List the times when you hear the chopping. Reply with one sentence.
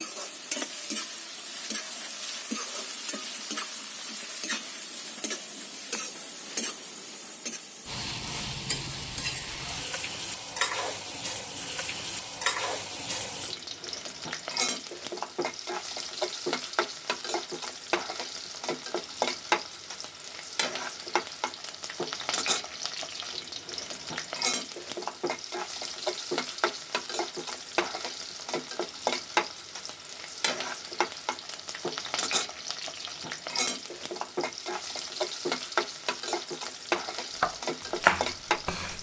The chopping can be heard from 37.4 to 38.9 s.